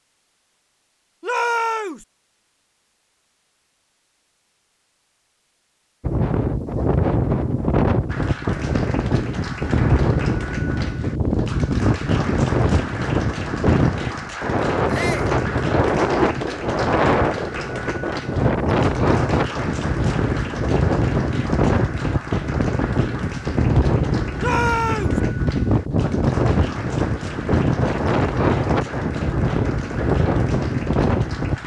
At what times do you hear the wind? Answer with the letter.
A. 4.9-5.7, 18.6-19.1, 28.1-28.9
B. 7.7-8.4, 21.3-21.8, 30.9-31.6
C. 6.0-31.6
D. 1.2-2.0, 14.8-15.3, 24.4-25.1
C.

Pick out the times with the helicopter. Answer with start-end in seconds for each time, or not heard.
not heard.